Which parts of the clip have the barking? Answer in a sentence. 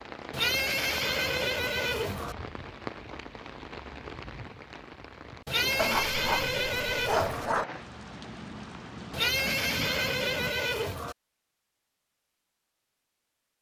You can hear the barking from 5.8 to 7.7 s.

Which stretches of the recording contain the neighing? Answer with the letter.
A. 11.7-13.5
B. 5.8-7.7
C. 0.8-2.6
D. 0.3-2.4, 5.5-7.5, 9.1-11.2
D.